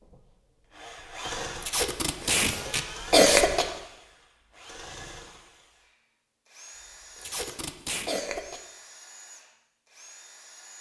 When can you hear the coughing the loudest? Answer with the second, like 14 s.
3 s.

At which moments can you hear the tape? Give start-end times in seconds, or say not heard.
1.6-3.5, 7.2-8.1.